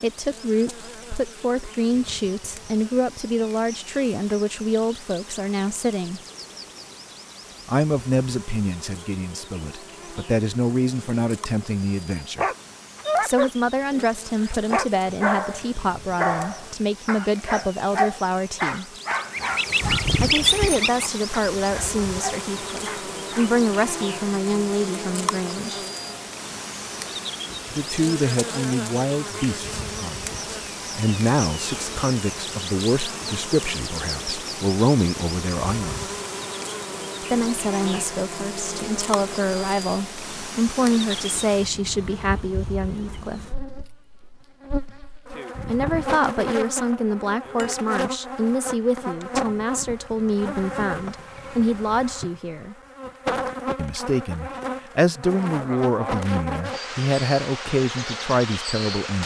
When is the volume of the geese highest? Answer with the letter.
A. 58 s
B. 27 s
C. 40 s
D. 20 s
D.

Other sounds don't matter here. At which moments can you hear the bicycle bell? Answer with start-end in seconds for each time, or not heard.
19.8-20.9, 45.5-46.2.